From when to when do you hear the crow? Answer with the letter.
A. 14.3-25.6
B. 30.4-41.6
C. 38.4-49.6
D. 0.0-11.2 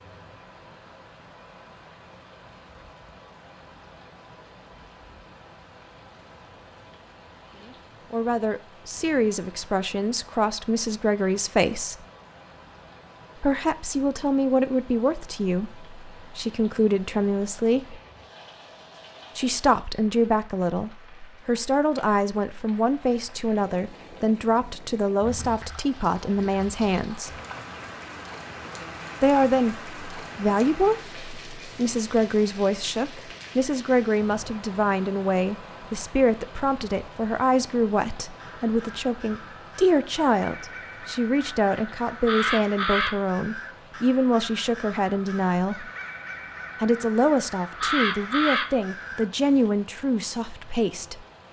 C.